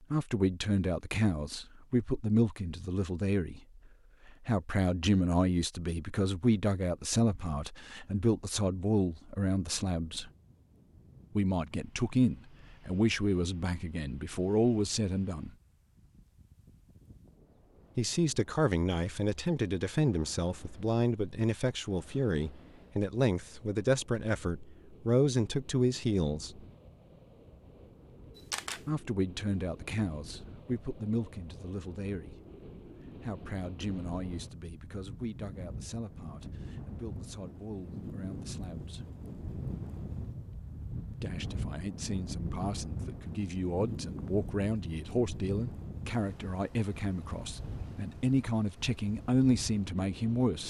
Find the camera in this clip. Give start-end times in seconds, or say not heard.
28.4-28.9.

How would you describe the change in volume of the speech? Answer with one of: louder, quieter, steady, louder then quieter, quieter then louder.
quieter then louder.